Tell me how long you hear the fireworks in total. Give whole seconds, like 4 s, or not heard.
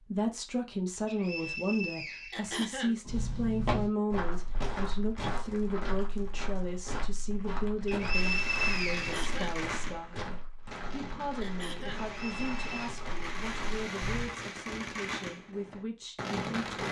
9 s.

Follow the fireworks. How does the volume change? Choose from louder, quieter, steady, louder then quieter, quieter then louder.
quieter then louder.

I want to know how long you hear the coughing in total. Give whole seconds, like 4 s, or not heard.
2 s.